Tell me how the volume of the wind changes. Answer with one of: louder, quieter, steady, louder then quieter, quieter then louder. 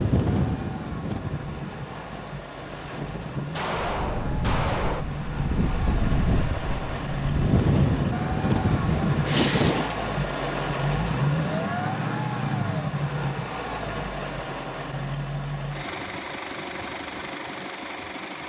quieter then louder.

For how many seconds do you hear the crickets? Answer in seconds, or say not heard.
not heard.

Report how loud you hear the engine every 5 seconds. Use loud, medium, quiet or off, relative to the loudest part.
medium, loud, loud, medium.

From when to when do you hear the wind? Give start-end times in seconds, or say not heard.
0.0-9.9.